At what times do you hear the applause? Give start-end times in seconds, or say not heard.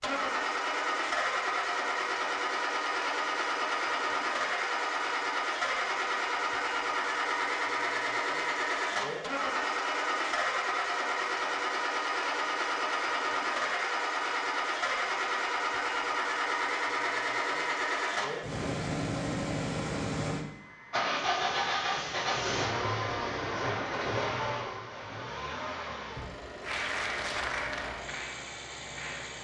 26.6-29.3.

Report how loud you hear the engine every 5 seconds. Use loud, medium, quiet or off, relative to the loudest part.
loud, loud, loud, loud, loud, medium.